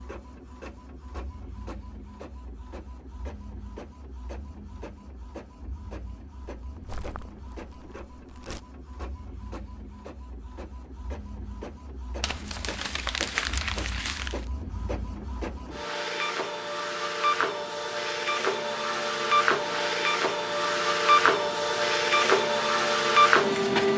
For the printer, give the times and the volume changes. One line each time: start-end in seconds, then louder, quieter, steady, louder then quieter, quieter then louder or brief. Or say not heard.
0.0-23.9 louder.